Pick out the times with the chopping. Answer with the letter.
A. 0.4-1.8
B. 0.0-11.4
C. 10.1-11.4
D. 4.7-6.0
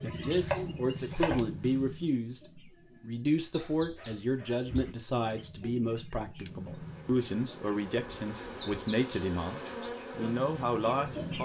A.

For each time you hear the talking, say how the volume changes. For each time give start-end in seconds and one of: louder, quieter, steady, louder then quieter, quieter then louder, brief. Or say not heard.
0.0-11.4 steady.